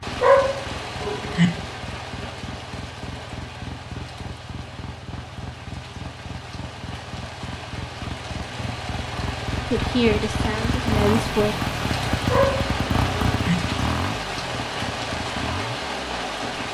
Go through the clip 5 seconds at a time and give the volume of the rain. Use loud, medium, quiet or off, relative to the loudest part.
medium, medium, loud, loud.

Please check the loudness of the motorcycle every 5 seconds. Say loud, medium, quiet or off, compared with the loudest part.
medium, medium, loud, medium.